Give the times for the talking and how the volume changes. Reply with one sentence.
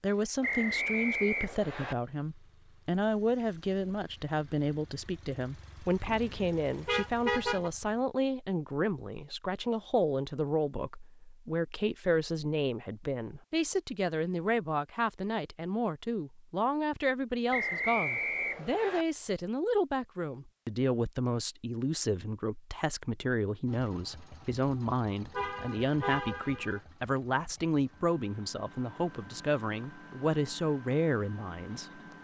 The talking can be heard from 0.0 to 32.0 s, at a steady volume.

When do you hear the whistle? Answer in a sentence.
You can hear the whistle from 0.4 to 1.9 s and from 17.5 to 19.1 s.